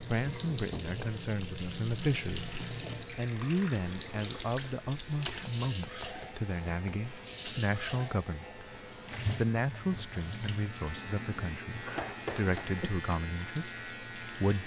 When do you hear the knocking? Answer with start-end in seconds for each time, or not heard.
0.2-1.0, 5.6-7.0, 11.9-12.7.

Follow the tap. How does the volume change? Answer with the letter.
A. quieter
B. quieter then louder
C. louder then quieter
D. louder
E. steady
A.